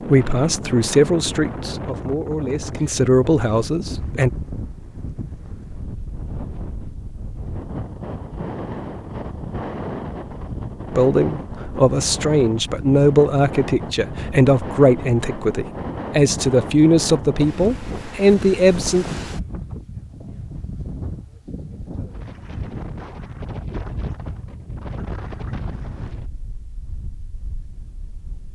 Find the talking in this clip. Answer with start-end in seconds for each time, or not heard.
0.1-4.3, 10.9-19.1.